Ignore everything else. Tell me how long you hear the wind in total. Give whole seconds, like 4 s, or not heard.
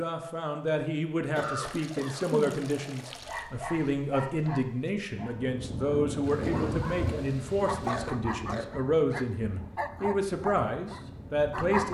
7 s.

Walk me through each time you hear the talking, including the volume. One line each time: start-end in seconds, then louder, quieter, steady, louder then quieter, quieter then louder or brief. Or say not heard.
0.0-11.8 steady.